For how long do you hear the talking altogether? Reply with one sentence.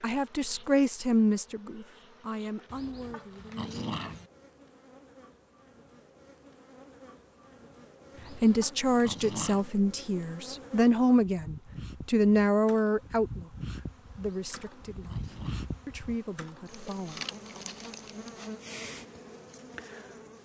You can hear the talking for 13 seconds altogether.